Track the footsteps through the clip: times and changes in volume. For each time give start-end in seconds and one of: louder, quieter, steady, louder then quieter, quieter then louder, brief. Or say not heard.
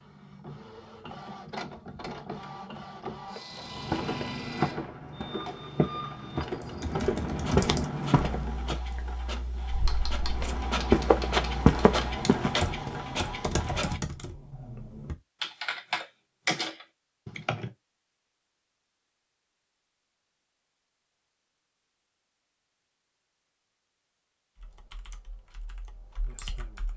3.6-8.8 quieter then louder
10.2-12.9 brief.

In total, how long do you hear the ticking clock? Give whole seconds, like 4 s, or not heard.
not heard.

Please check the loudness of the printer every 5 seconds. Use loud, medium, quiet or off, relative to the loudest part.
medium, medium, loud, off, off, off.